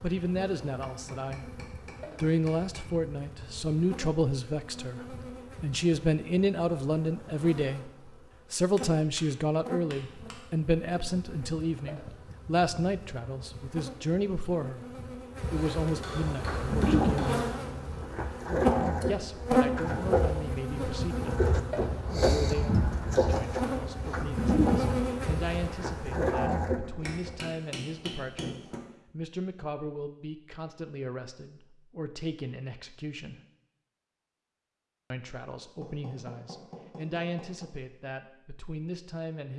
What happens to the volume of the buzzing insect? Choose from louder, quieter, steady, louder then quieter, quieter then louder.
louder.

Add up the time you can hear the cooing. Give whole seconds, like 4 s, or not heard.
11 s.